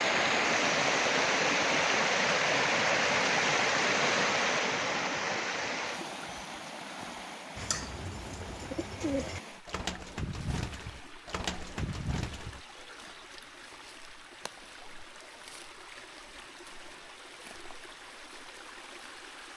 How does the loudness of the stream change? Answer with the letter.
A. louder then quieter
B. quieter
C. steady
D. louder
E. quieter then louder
B.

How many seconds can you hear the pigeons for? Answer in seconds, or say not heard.
5 s.